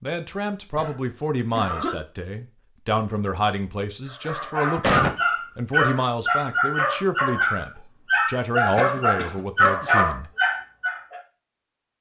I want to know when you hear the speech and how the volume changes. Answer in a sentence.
The speech can be heard from 0.0 to 10.3 s, at a steady volume.